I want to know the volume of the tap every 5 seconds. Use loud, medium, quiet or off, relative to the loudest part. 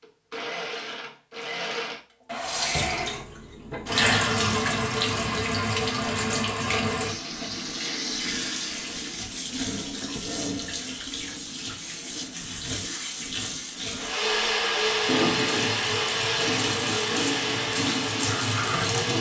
loud, loud, medium, loud.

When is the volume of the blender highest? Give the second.
15 s.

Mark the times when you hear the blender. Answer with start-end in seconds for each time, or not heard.
0.0-3.2, 13.9-19.1.